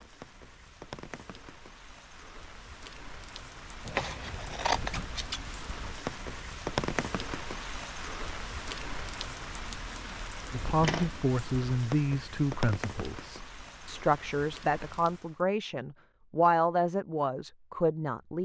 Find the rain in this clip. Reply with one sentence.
You can hear the rain from 0.0 to 15.4 s.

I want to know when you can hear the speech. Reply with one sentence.
You can hear the speech from 10.5 to 18.3 s.